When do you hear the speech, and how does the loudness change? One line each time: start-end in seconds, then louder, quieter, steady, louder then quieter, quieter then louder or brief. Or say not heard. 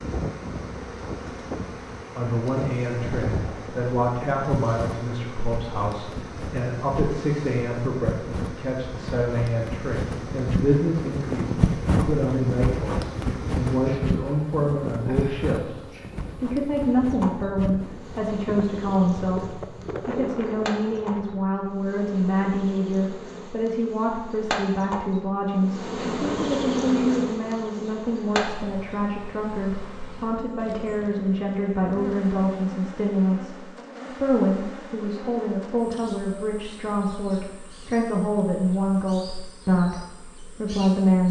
2.1-41.2 steady.